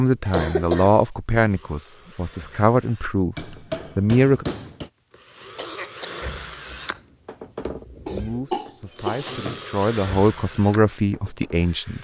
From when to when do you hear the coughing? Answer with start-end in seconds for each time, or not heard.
0.2-1.1, 5.5-6.3, 8.1-9.6.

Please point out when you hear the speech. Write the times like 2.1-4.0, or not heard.
0.0-4.5, 8.1-11.9.